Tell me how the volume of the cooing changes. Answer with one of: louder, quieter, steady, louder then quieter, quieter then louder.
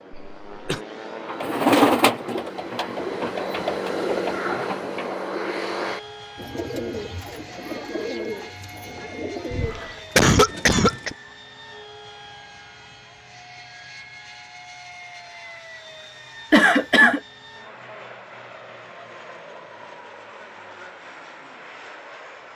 quieter.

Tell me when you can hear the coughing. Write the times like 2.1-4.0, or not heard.
0.1-0.8, 9.5-11.2, 16.5-17.2.